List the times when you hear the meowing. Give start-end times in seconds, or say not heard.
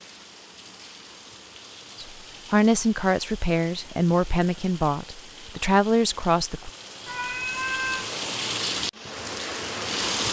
7.0-8.1.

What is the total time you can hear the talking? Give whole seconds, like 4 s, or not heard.
5 s.